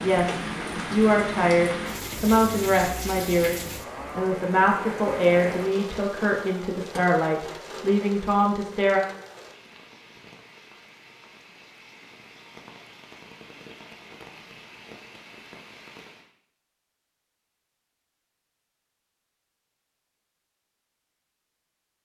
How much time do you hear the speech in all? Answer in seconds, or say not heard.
9 s.